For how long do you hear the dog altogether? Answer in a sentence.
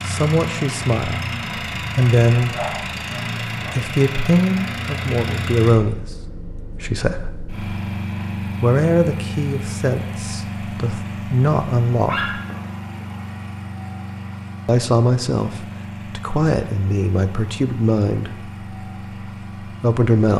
You can hear the dog for 2 seconds altogether.